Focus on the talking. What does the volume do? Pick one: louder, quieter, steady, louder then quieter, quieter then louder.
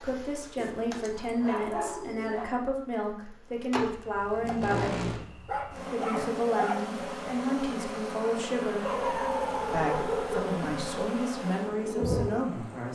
steady.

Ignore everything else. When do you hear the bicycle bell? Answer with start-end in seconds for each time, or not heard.
not heard.